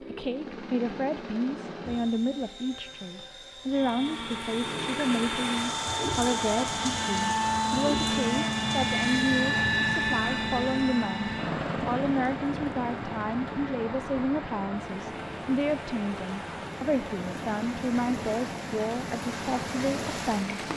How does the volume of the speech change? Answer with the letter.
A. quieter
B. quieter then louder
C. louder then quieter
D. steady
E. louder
D.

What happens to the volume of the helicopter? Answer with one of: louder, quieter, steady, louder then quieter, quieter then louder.
louder then quieter.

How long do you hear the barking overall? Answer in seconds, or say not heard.
not heard.